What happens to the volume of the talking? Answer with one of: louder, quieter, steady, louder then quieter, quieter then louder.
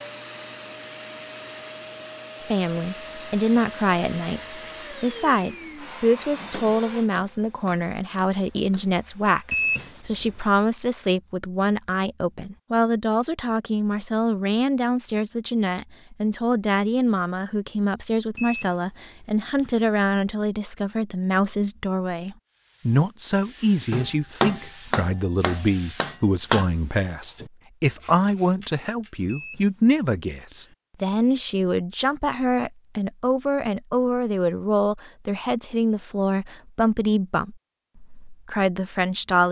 steady.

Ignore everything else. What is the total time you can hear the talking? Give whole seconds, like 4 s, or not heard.
37 s.